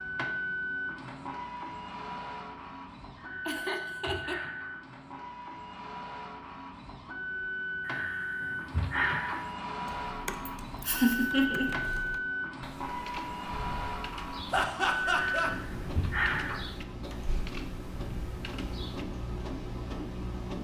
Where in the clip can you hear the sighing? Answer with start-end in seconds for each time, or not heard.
3.1-4.8, 7.8-9.5, 15.1-16.7.